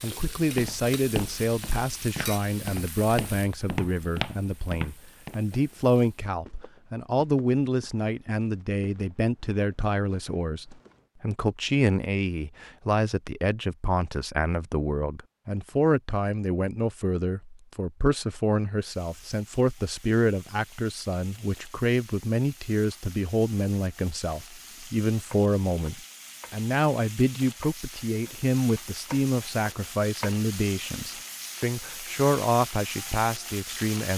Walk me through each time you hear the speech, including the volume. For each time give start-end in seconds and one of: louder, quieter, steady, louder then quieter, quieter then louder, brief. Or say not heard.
0.0-34.1 steady.